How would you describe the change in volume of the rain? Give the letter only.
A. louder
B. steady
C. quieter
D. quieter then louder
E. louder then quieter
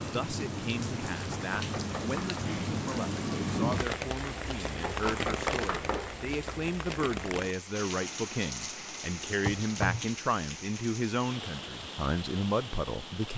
C.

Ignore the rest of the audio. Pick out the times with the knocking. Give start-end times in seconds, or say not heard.
1.3-2.5, 4.8-6.2, 9.4-10.1.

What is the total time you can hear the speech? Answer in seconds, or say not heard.
13 s.